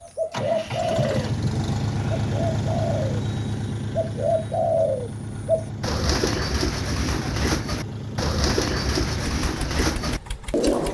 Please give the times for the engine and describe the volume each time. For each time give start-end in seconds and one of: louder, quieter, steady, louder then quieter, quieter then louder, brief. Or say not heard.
0.1-10.8 quieter.